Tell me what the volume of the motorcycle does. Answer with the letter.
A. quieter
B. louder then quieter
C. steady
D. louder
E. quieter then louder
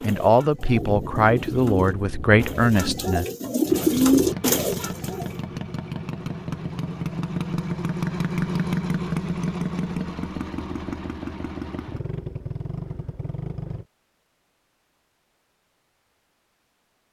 B.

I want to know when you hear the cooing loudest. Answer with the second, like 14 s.
4 s.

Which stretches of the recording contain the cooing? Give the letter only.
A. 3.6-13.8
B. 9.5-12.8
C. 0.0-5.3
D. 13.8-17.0
C.